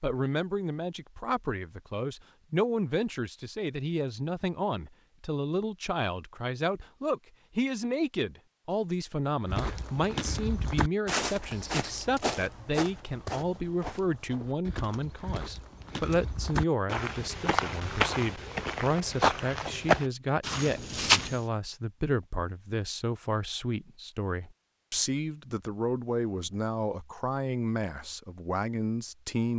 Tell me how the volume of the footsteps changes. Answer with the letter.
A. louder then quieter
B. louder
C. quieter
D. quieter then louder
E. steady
D.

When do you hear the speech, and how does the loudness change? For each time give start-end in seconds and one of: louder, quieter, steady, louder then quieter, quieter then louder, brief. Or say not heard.
0.0-29.5 steady.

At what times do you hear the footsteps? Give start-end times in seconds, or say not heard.
9.4-21.4.